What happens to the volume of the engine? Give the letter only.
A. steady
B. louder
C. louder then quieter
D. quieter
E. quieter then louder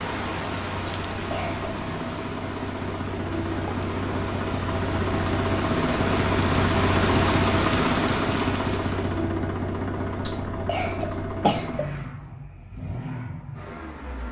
C.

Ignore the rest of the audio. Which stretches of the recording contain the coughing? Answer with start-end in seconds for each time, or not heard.
0.8-1.7, 10.2-11.8.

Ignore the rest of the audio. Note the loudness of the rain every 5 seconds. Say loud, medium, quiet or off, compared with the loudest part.
medium, loud, off.